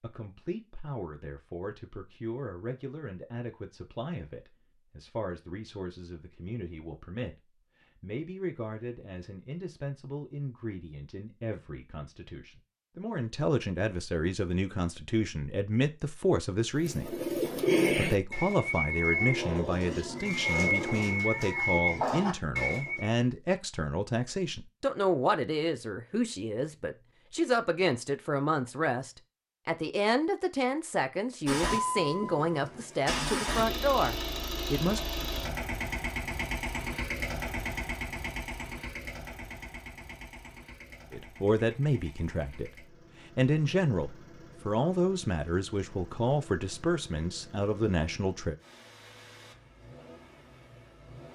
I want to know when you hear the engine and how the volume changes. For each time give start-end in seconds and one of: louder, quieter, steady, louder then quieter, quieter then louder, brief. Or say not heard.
31.4-51.3 quieter.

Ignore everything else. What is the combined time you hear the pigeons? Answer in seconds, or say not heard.
6 s.